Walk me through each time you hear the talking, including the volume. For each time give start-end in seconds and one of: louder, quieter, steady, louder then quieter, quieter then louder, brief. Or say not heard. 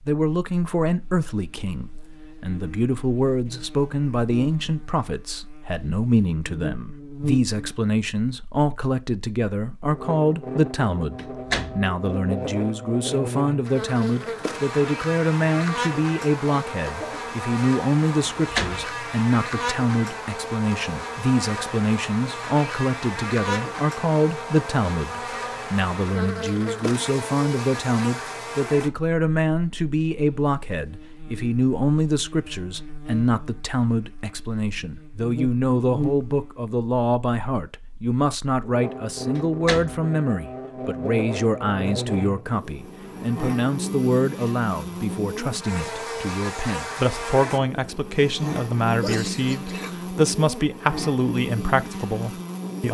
0.1-52.9 steady.